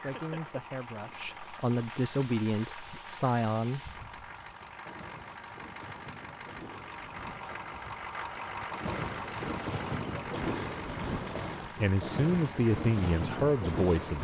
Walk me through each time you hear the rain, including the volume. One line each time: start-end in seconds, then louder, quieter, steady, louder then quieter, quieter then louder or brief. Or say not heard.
0.0-14.1 louder.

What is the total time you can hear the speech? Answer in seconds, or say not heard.
6 s.